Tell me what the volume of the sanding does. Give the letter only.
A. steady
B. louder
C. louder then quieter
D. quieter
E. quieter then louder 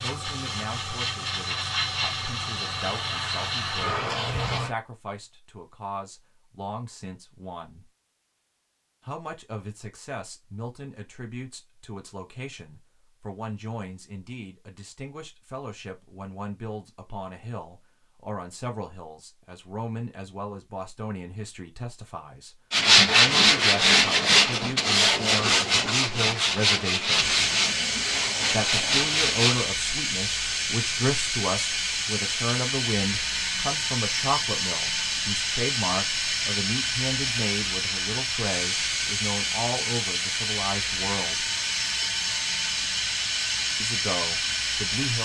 D.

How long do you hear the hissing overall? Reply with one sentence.
The hissing can be heard for 23 seconds in total.